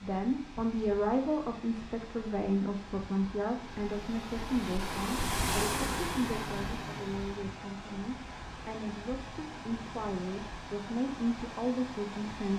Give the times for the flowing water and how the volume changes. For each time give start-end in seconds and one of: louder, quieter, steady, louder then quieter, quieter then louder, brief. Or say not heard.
0.0-12.5 louder then quieter.